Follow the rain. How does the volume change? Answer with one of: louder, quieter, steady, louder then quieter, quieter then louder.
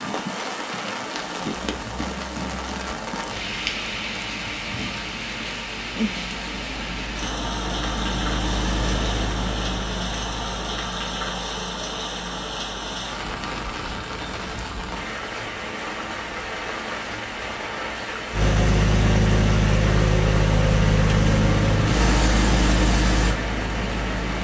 steady.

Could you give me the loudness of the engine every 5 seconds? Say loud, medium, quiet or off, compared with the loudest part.
quiet, medium, quiet, loud, loud.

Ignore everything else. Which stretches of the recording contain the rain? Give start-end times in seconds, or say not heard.
0.0-24.4.